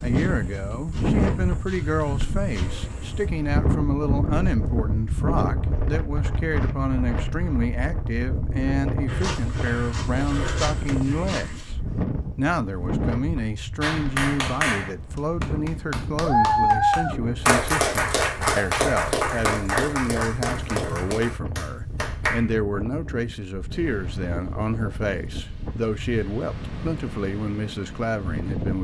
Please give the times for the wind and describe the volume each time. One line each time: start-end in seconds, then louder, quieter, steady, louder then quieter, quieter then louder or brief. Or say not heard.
0.0-28.7 quieter.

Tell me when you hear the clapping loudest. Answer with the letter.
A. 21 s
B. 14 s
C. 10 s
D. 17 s
D.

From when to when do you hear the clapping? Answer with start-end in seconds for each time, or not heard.
13.8-22.5.